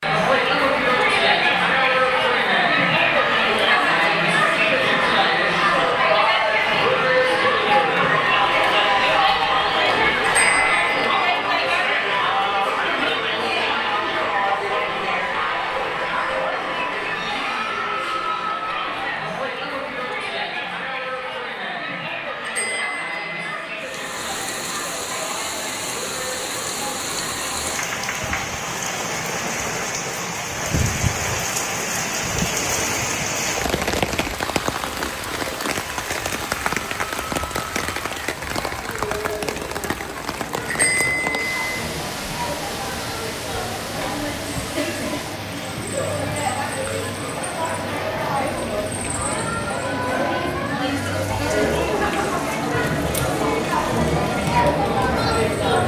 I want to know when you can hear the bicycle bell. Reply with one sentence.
You can hear the bicycle bell from 10.2 to 11.3 s, from 22.4 to 23.6 s and from 40.6 to 41.5 s.